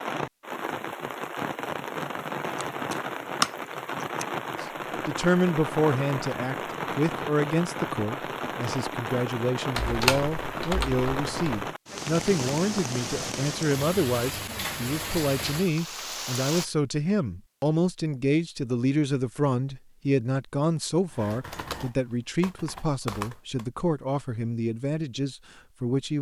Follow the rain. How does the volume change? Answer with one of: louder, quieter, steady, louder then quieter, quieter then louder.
steady.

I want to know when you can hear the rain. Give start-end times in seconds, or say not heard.
0.0-16.6.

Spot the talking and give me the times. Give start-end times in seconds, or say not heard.
4.6-26.1.